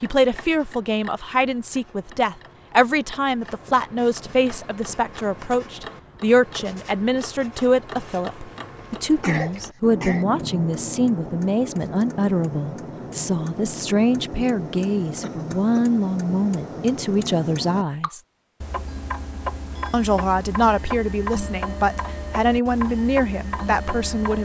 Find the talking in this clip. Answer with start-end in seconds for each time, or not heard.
0.0-18.2, 19.9-24.4.